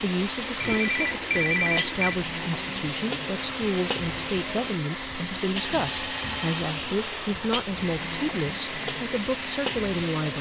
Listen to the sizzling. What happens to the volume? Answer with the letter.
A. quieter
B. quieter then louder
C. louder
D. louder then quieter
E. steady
E.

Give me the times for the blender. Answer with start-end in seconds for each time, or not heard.
0.0-10.3.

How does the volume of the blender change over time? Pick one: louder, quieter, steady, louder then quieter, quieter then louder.
steady.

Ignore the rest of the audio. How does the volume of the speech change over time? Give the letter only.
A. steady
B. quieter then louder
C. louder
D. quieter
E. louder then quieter
A.